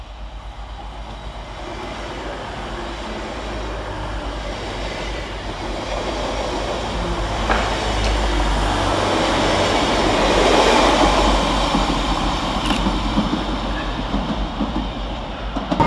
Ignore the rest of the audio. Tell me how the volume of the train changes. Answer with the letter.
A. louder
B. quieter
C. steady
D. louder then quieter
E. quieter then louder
D.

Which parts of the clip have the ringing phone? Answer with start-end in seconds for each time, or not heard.
7.5-8.3.